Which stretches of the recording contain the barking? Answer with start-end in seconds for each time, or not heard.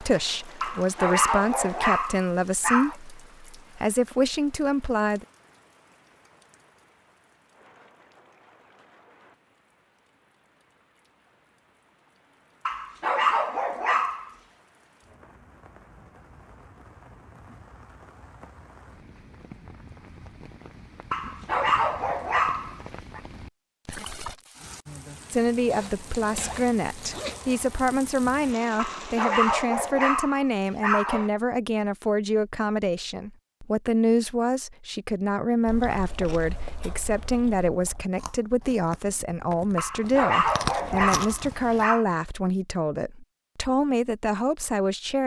0.6-3.0, 12.7-14.3, 21.1-23.2, 28.8-31.3, 39.8-42.0.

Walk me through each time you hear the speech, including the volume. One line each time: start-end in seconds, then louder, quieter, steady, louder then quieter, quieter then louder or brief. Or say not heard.
0.0-5.2 steady
25.3-45.2 steady.